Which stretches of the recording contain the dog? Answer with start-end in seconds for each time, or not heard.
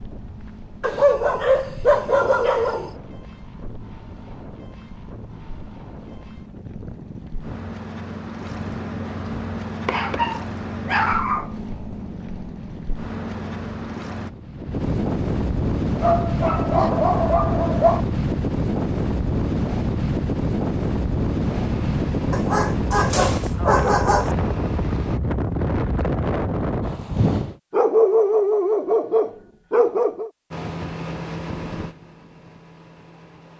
0.8-2.9, 9.8-11.5, 16.0-18.0, 22.3-24.4, 27.7-30.3.